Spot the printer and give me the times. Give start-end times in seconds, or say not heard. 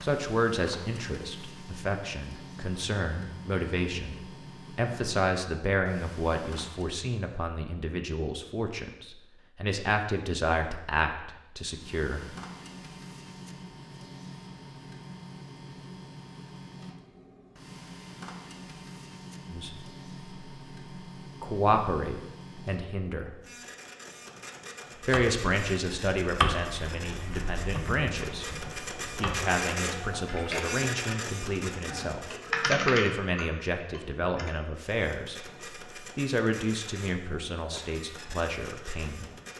0.0-7.0, 11.6-32.7, 34.8-39.5.